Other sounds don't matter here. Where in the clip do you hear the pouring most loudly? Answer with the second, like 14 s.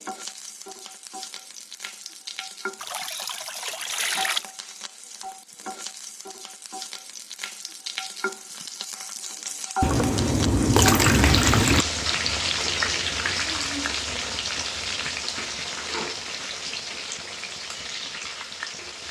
11 s.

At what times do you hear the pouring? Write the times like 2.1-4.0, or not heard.
2.8-4.5, 9.8-11.8.